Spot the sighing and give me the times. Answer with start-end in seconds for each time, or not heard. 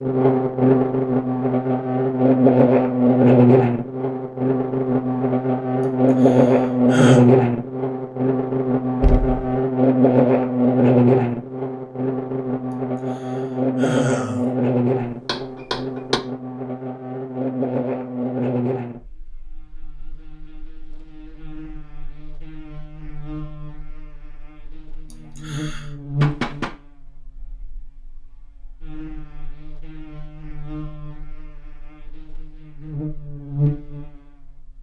5.8-7.2, 12.7-14.5, 25.1-25.9.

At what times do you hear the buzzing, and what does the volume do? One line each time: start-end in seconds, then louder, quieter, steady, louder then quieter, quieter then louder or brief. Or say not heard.
0.0-34.7 quieter.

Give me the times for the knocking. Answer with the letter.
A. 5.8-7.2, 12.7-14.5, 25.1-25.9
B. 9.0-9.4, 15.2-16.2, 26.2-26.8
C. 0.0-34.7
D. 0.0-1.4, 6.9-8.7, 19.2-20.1
B.